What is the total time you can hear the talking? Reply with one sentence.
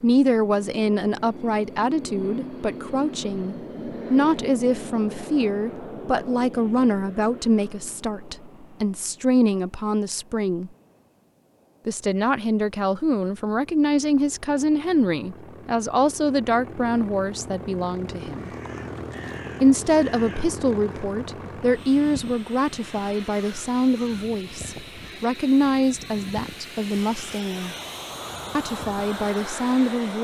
The talking can be heard for 27 seconds in total.